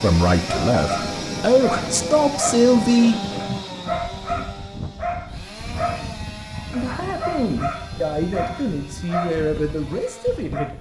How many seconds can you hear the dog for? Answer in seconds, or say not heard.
10 s.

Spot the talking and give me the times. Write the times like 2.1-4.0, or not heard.
0.0-3.6, 6.7-10.7.